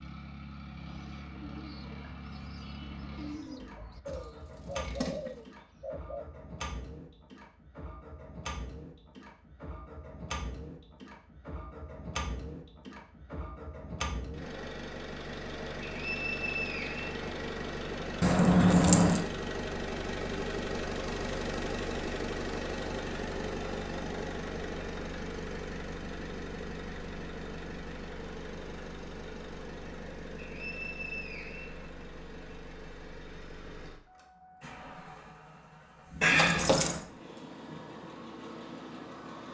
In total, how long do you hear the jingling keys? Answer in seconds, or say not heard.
3 s.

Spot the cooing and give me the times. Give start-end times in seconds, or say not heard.
0.8-6.2.